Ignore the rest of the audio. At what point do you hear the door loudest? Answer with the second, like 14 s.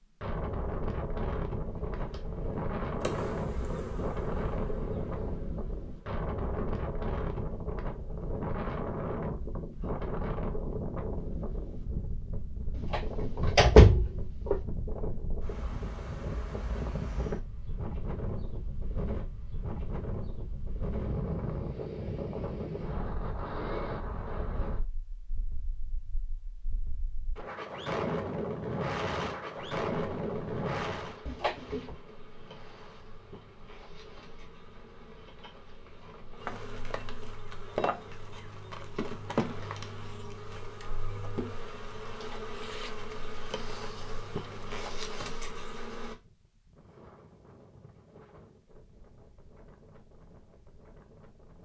14 s.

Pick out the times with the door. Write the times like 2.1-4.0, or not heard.
12.8-14.6, 31.2-31.9.